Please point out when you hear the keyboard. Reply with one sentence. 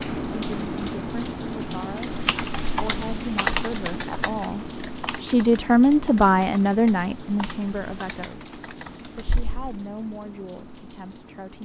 The keyboard can be heard from 1.8 to 9.6 s.